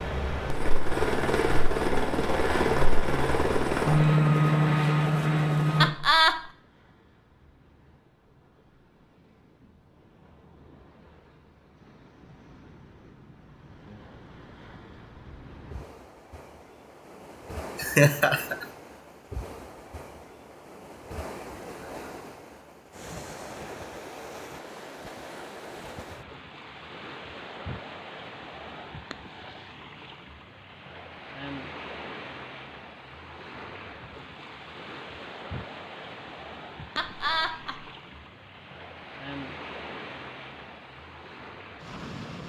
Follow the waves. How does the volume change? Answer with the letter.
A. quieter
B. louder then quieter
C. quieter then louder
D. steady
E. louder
E.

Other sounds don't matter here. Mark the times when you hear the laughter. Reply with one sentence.
The laughter can be heard from 5.8 to 6.4 s, from 17.8 to 18.6 s and from 37.0 to 37.9 s.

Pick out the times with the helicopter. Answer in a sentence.
The helicopter can be heard from 0.0 to 5.9 s.